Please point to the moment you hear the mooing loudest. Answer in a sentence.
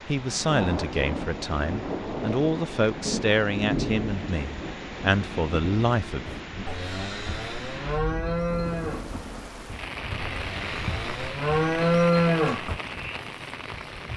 The volume of the mooing peaks at 12 seconds.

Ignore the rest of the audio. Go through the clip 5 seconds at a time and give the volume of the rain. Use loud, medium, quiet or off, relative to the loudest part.
loud, medium, loud.